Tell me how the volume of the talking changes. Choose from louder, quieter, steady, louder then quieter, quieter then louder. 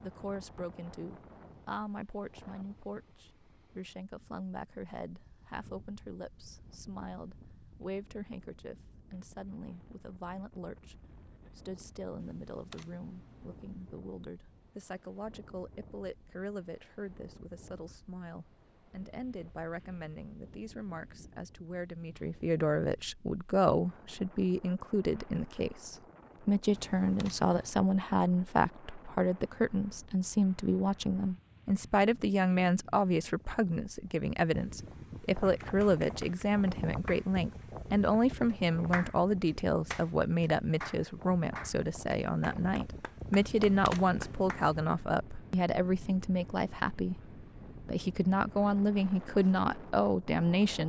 louder.